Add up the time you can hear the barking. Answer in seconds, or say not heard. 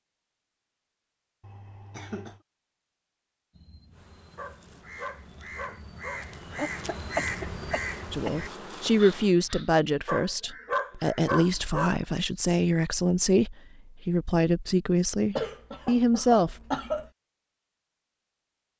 4 s.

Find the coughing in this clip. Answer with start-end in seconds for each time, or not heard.
1.4-2.4, 6.5-8.9, 15.3-17.1.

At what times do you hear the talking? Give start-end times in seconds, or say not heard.
8.1-16.6.